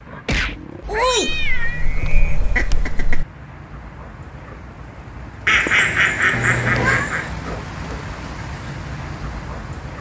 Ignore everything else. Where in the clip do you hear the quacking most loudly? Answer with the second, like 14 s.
6 s.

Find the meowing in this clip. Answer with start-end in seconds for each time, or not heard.
0.2-1.9, 6.3-7.1.